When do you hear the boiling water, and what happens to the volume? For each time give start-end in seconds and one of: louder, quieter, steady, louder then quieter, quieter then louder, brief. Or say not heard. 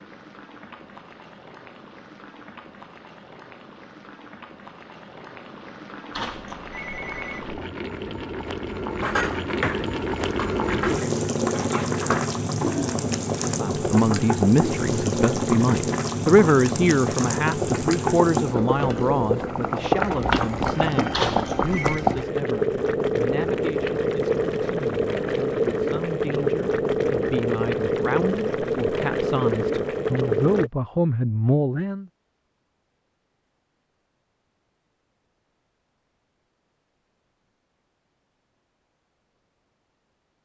0.0-30.7 louder.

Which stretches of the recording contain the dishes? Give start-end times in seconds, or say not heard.
9.0-13.0.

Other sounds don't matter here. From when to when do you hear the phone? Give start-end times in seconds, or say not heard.
6.1-7.6, 21.1-22.0.